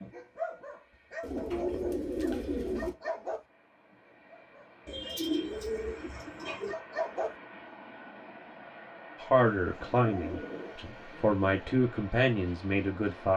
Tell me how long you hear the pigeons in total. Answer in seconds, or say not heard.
6 s.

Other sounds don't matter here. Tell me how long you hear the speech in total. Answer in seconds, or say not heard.
4 s.